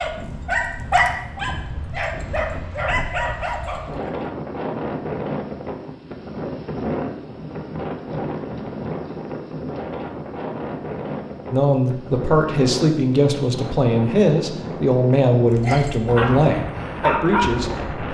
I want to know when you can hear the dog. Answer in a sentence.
The dog can be heard from 0.0 to 4.1 s and from 15.6 to 17.8 s.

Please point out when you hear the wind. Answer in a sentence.
You can hear the wind from 0.0 to 18.0 s.